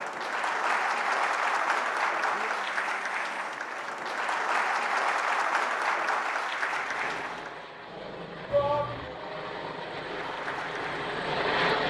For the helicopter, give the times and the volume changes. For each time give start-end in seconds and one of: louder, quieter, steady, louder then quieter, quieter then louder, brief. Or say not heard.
6.5-11.8 louder.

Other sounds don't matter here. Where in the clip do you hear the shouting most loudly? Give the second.
9 s.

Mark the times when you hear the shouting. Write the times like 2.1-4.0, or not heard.
2.3-3.6, 8.5-9.2.